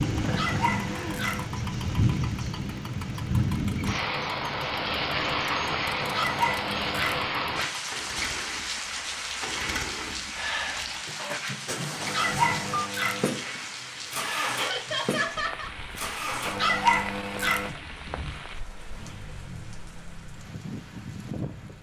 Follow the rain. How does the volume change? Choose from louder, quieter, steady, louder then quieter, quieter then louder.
quieter.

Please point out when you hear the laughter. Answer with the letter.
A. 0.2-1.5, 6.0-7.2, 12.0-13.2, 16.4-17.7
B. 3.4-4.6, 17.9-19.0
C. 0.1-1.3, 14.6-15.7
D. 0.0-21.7
C.